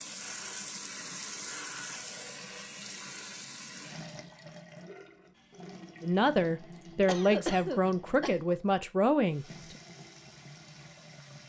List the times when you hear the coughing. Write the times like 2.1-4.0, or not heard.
7.0-8.4.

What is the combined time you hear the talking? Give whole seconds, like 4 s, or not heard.
4 s.